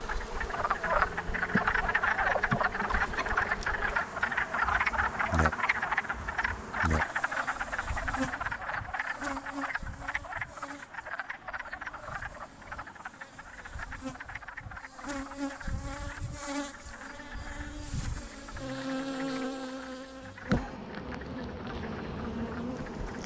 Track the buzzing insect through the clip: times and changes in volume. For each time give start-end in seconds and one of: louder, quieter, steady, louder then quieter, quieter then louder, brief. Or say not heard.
0.0-23.2 quieter then louder.